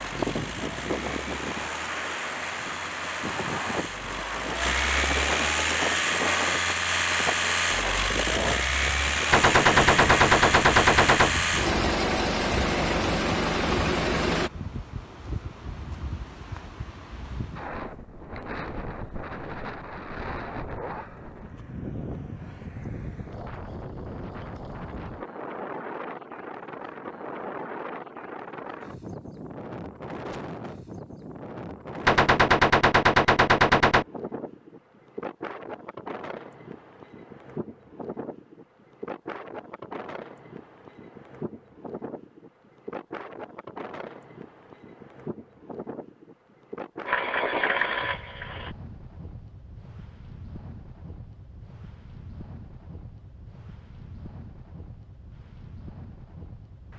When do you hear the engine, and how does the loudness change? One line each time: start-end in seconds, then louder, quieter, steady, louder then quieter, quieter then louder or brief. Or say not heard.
0.0-14.5 louder
47.0-48.8 brief.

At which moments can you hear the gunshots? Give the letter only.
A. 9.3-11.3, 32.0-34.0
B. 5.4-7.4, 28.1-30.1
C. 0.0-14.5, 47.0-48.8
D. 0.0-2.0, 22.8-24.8
A.